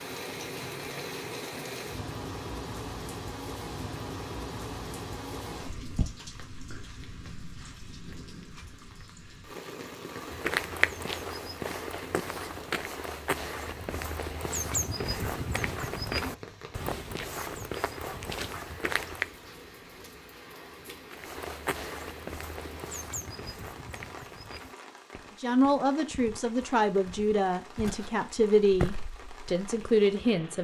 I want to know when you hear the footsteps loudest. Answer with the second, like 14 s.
11 s.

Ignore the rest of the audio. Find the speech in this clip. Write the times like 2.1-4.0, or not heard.
25.4-30.5.